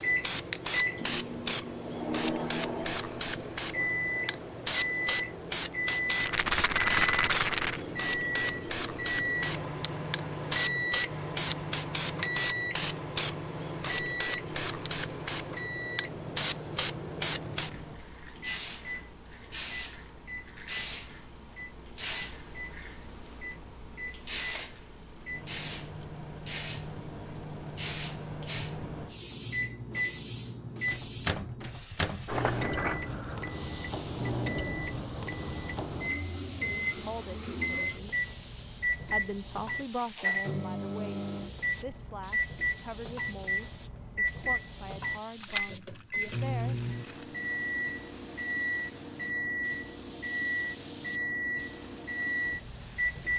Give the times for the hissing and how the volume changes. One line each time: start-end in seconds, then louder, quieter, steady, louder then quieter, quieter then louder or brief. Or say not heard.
0.0-53.3 quieter.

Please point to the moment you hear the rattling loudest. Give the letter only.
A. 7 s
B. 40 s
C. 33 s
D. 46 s
A.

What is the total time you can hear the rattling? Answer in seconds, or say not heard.
4 s.